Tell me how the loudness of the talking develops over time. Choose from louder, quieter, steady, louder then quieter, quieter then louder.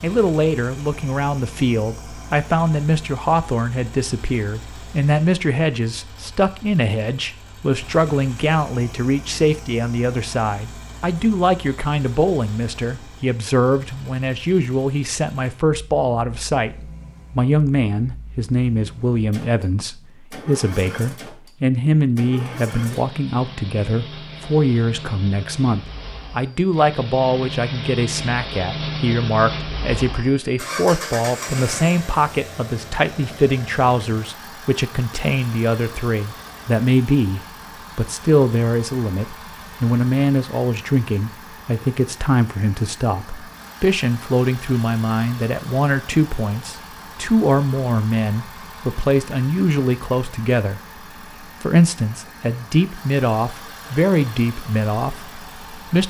steady.